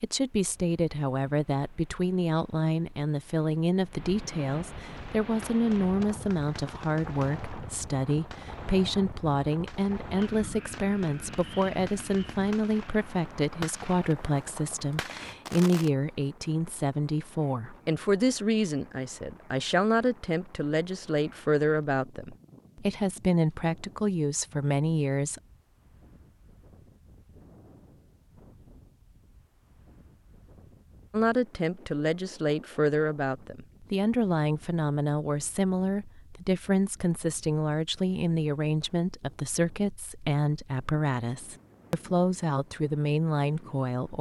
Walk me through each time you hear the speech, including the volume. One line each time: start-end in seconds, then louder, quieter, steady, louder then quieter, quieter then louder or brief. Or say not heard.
0.0-25.4 steady
31.1-44.1 steady.